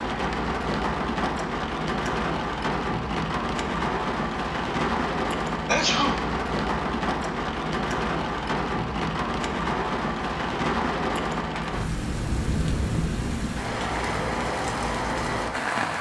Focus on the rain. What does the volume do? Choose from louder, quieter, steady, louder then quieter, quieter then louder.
steady.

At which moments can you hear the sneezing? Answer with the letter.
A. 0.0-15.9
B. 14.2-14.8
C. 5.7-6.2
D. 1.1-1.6
C.